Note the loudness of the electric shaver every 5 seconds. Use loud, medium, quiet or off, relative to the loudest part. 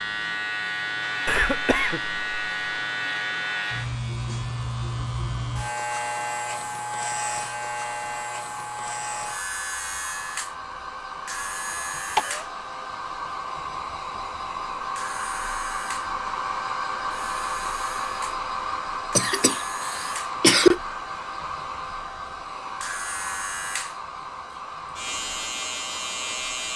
loud, loud, medium, medium, medium, loud.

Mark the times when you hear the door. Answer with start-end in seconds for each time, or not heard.
not heard.